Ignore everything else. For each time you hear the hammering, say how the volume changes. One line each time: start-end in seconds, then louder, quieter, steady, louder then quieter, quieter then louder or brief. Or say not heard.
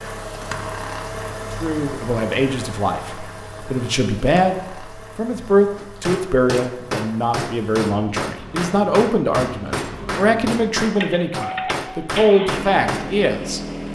5.8-13.2 steady.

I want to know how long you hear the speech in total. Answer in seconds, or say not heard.
12 s.